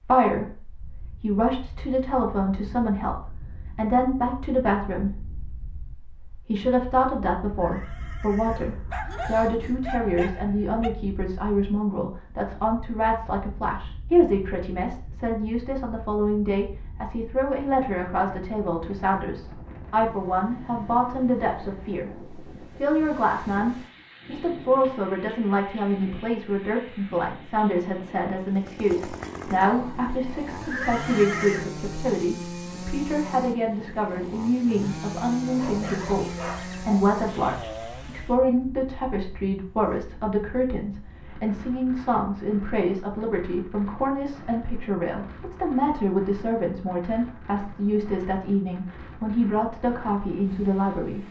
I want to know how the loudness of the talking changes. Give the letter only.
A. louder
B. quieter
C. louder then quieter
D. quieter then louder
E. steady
E.